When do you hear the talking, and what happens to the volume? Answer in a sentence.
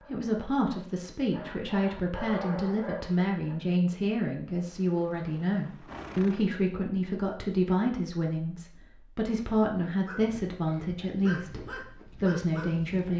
The talking can be heard from 0.0 to 13.1 s, at a steady volume.